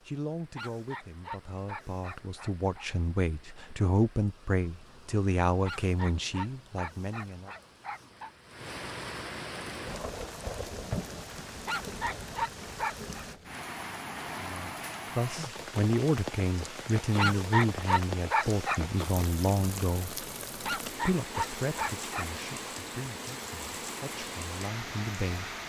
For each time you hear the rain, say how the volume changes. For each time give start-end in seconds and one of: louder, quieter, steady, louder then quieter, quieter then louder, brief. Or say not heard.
0.0-25.6 louder.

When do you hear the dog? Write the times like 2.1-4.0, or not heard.
0.6-2.9, 5.7-8.3, 11.7-13.2, 17.1-18.8, 20.6-22.2.